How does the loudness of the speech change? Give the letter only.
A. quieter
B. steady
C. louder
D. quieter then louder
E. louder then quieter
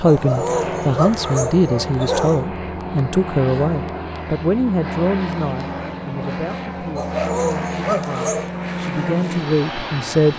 D.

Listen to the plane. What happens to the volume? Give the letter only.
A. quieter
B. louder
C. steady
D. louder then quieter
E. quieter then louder
C.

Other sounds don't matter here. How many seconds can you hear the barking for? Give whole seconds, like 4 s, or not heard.
4 s.